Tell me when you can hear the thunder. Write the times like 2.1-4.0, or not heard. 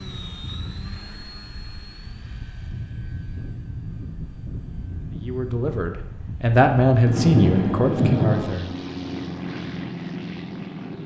7.0-8.3.